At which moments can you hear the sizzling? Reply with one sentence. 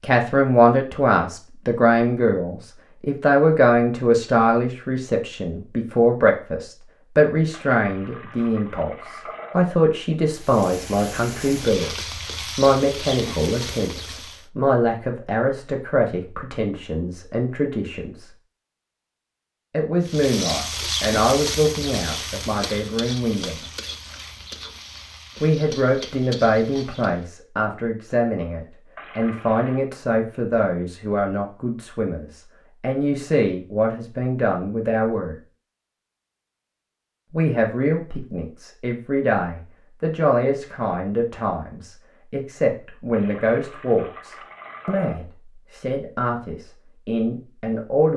You can hear the sizzling from 10.3 to 14.4 s and from 20.1 to 27.2 s.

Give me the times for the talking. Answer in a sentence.
You can hear the talking from 0.0 to 18.3 s, from 19.7 to 23.6 s, from 25.4 to 35.4 s and from 37.3 to 48.1 s.